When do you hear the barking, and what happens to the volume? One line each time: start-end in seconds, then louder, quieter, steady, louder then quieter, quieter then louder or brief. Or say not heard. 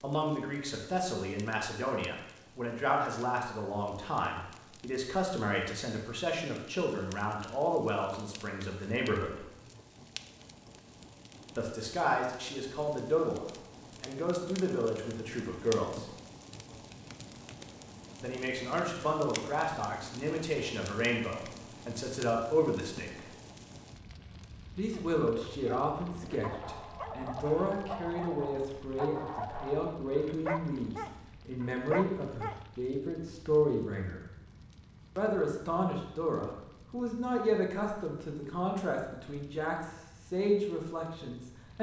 24.9-32.6 louder.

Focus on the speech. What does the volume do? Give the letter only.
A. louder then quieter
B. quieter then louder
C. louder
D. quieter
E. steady
E.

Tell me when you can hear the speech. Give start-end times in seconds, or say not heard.
0.0-9.4, 11.6-16.1, 18.2-23.2, 24.8-34.2, 35.1-41.7.